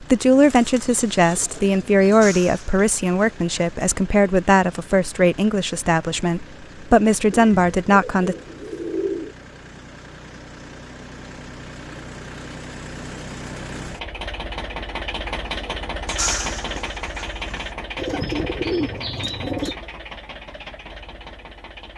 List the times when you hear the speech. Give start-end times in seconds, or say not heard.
0.0-8.3.